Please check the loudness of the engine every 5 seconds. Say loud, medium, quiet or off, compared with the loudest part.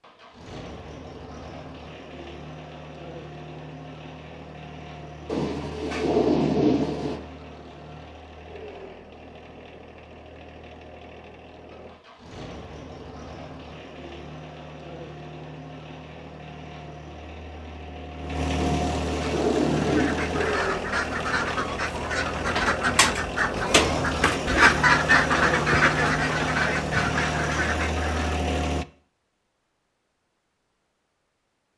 quiet, quiet, quiet, medium, loud, loud, off.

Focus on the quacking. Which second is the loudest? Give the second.
25 s.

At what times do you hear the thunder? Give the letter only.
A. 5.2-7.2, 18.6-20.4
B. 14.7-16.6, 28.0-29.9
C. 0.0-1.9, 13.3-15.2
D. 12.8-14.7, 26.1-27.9
A.